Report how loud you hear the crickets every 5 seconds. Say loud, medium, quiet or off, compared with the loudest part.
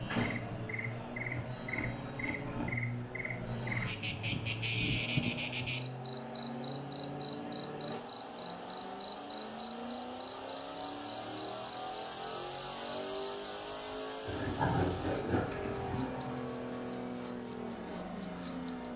loud, loud, medium, loud.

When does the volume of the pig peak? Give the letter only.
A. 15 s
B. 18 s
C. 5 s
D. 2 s
A.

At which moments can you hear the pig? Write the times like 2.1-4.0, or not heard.
1.3-2.9, 14.2-16.1.